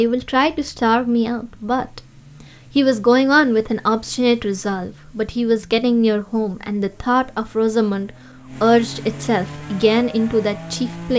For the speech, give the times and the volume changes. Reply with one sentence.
The speech can be heard briefly from 0.0 to 2.0 s; and from 2.8 to 11.1 s, at a steady volume.